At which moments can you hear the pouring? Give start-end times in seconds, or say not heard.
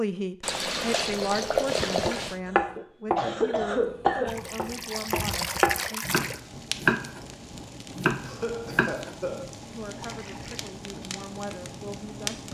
0.4-2.4, 4.2-6.4, 10.0-10.8.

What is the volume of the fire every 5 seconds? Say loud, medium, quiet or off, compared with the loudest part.
off, loud, loud.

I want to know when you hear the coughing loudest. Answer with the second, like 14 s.
3 s.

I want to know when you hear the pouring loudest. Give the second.
2 s.